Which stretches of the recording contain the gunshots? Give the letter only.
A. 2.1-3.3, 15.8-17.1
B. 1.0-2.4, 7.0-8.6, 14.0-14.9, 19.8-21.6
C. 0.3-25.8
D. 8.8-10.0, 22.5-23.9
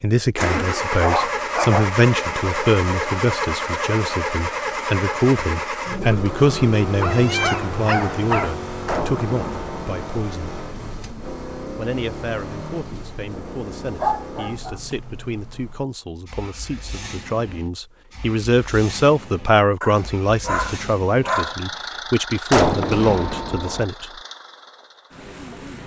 D.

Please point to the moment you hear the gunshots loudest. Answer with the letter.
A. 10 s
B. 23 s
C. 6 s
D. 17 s
B.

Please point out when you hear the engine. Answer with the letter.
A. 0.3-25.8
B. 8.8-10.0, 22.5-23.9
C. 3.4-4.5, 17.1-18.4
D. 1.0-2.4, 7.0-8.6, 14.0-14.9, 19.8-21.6
A.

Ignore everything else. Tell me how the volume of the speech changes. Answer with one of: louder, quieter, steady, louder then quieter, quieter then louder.
quieter then louder.